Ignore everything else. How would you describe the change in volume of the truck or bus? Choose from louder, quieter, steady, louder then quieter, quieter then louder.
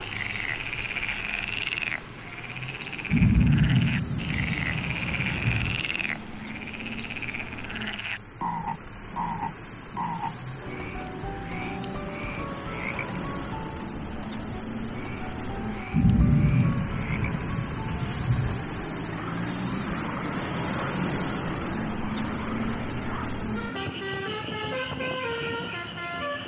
louder.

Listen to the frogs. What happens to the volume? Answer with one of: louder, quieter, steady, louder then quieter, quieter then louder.
quieter.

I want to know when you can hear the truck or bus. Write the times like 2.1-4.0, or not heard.
0.0-26.4.